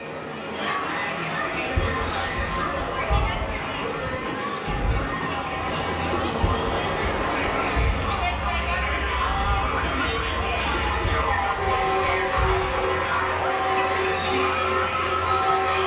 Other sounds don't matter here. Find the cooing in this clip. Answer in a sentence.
The cooing can be heard from 1.6 to 13.0 s.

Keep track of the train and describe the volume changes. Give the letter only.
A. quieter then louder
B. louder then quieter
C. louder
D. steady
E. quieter
C.